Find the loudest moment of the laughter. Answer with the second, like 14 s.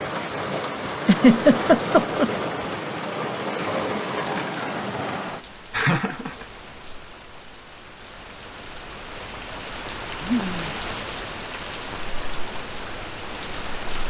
1 s.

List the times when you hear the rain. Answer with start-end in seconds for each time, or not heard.
0.0-14.0.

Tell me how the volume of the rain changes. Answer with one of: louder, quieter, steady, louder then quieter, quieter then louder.
quieter then louder.